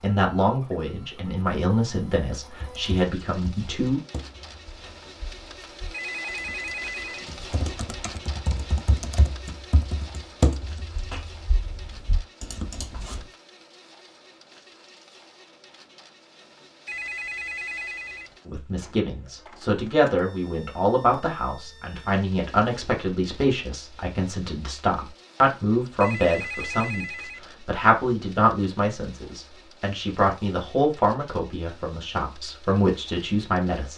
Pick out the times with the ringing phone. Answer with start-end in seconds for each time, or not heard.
5.9-7.3, 16.9-18.4, 26.0-27.5.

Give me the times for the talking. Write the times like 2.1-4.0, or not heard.
0.0-4.0, 18.4-33.9.